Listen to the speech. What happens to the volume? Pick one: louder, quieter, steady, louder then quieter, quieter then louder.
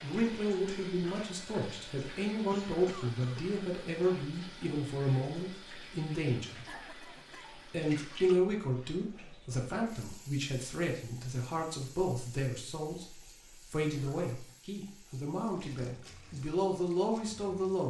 steady.